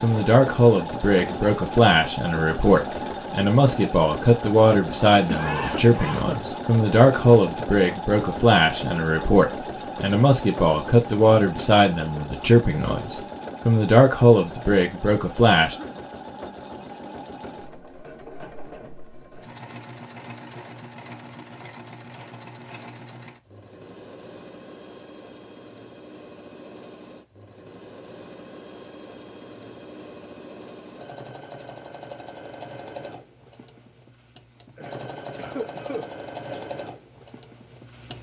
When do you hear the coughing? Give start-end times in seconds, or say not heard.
5.2-6.5, 15.6-16.1, 34.8-36.6.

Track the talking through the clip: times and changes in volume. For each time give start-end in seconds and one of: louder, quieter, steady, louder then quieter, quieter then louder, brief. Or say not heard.
0.0-15.8 steady.